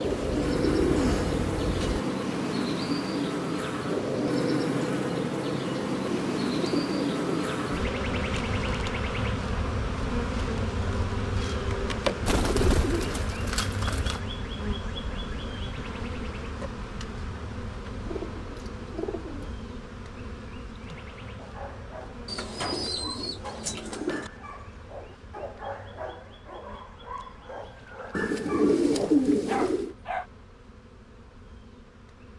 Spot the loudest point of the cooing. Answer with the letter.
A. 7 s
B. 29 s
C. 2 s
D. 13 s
B.